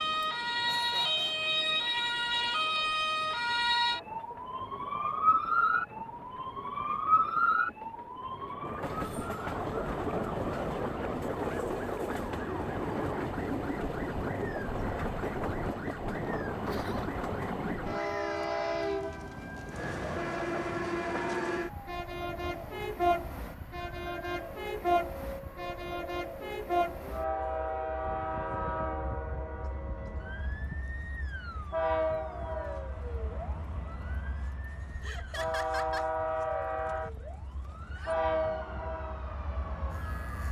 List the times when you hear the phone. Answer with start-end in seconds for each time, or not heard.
not heard.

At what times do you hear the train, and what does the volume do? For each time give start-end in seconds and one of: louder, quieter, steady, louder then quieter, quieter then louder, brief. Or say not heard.
0.0-40.4 louder.